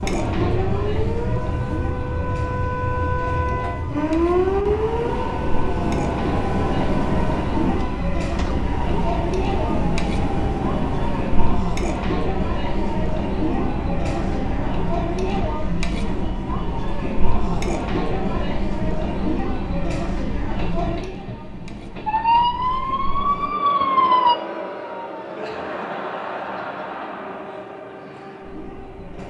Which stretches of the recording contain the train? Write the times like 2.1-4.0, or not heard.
0.0-29.2.